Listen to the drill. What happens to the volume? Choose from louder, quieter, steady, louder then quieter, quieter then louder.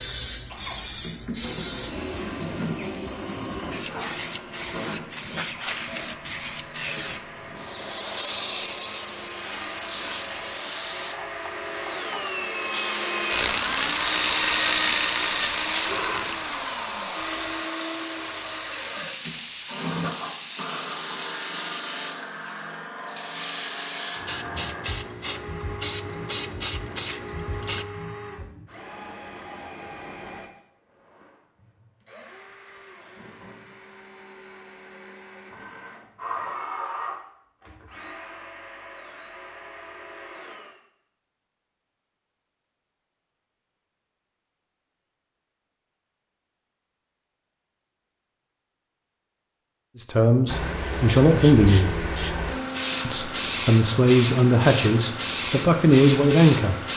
louder then quieter.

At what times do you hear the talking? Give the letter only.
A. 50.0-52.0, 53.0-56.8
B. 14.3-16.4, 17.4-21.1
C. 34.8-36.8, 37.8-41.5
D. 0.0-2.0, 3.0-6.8
A.